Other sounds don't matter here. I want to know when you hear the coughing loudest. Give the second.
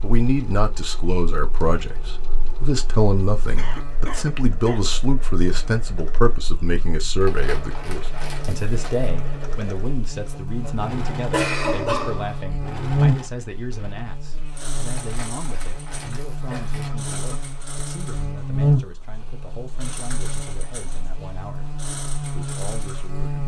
12 s.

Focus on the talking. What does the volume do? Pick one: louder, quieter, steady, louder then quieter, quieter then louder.
quieter.